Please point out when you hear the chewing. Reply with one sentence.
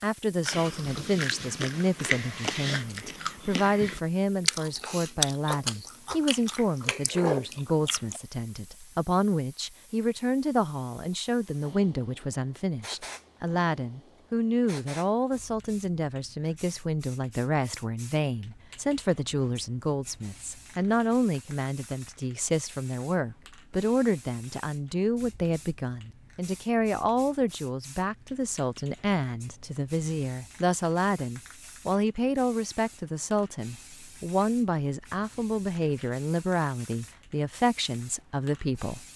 The chewing can be heard from 0.4 to 8.2 s.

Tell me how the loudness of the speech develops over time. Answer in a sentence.
The loudness of the speech stays about the same.